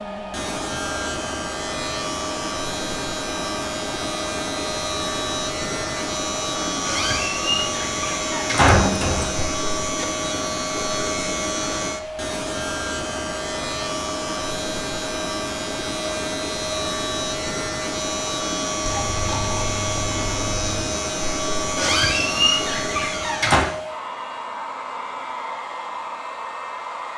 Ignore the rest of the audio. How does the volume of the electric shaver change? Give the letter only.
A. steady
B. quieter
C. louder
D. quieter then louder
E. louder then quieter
A.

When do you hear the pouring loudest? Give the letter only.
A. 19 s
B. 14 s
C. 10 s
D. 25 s
A.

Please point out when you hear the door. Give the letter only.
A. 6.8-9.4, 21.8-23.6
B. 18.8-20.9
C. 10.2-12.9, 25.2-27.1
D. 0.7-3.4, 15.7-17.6
A.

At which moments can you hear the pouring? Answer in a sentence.
You can hear the pouring from 18.8 to 20.9 s.